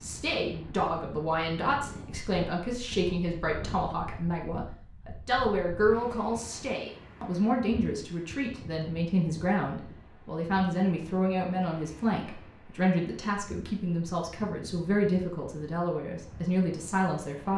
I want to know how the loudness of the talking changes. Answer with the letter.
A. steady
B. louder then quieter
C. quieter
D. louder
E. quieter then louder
A.